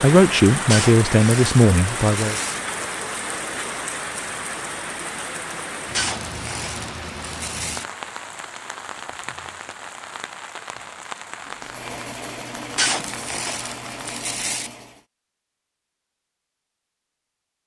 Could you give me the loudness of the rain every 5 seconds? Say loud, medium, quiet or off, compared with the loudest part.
loud, medium, medium, off.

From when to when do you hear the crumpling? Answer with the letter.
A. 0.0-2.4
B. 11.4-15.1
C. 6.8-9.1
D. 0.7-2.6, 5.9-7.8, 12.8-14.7
D.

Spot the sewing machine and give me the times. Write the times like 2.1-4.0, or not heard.
11.4-15.1.